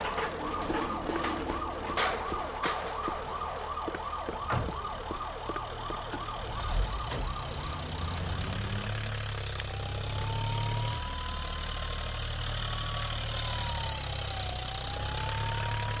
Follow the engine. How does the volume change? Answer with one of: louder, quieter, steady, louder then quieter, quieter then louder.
louder.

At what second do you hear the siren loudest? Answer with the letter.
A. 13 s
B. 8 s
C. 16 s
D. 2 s
D.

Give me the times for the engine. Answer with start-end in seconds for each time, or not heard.
0.1-15.9.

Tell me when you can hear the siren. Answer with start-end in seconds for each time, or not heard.
0.0-15.9.